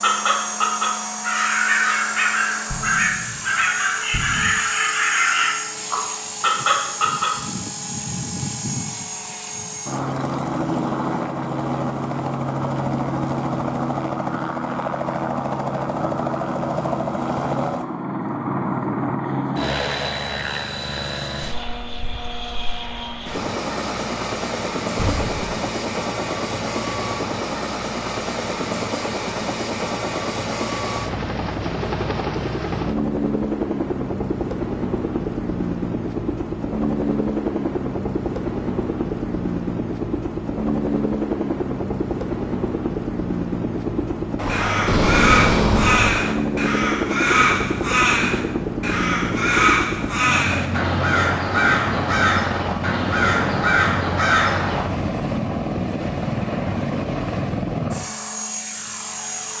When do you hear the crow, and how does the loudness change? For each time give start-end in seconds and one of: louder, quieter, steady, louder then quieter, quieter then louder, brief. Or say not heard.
0.0-7.3 steady
44.5-54.9 steady.